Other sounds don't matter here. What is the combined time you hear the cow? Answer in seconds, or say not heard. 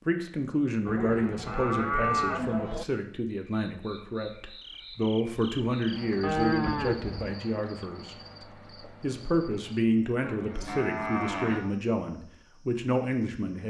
5 s.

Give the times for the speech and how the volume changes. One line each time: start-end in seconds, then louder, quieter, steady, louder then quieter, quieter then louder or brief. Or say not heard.
0.1-13.6 steady.